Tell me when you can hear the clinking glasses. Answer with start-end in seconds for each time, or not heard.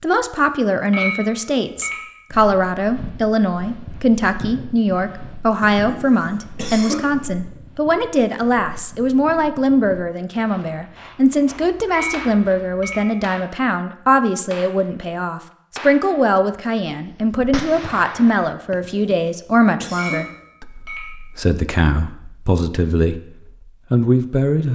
0.9-2.1, 11.9-13.3, 19.9-21.2.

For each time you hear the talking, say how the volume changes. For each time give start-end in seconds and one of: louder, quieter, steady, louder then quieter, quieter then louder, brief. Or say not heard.
0.0-24.7 steady.